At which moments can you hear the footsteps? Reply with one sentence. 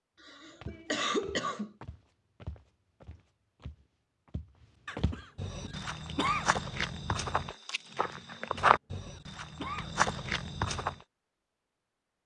You can hear the footsteps from 0.6 to 10.9 s.